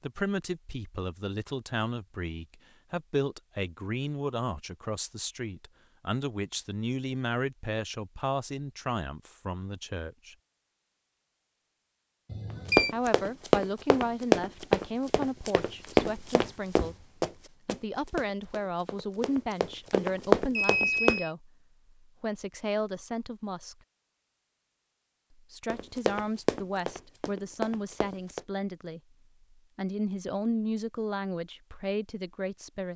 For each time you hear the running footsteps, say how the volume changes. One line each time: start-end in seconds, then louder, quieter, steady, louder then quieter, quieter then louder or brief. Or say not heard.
12.7-21.2 quieter then louder
25.7-28.4 brief.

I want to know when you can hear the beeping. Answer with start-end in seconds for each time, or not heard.
12.3-12.9, 20.6-21.3.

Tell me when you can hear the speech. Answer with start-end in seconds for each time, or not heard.
0.0-10.3, 12.9-23.8, 25.4-32.9.